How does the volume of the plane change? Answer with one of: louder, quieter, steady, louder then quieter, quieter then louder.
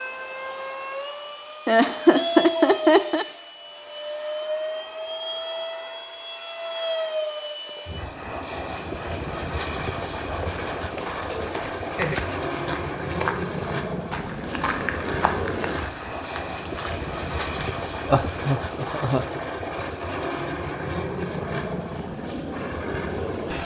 steady.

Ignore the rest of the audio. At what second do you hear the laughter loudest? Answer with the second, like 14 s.
2 s.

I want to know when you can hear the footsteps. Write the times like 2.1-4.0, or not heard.
10.1-17.8.